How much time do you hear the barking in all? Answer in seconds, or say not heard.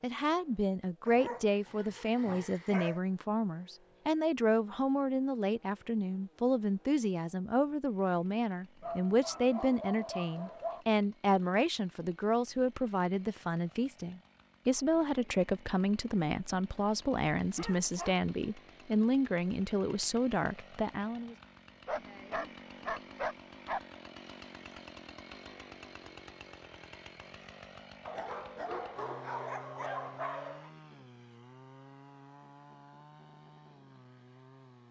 10 s.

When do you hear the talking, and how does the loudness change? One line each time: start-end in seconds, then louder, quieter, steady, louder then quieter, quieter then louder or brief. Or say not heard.
0.0-21.4 steady.